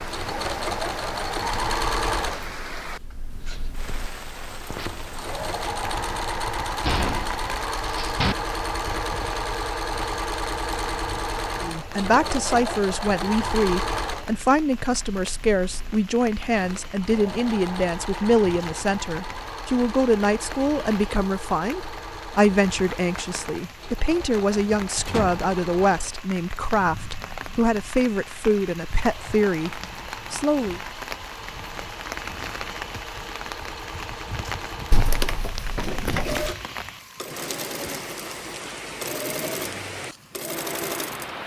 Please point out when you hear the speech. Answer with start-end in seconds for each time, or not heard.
11.6-30.8.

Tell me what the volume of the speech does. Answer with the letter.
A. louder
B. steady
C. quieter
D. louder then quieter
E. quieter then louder
B.